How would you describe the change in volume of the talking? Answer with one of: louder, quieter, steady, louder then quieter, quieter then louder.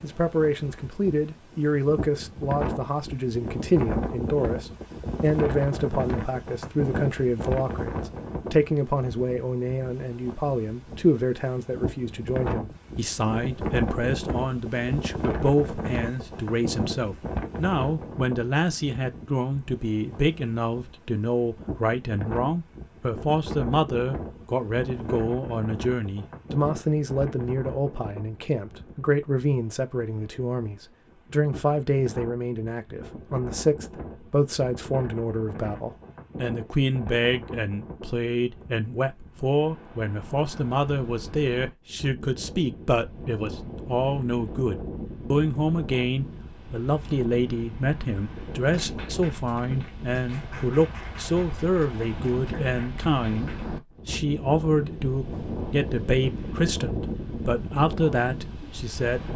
steady.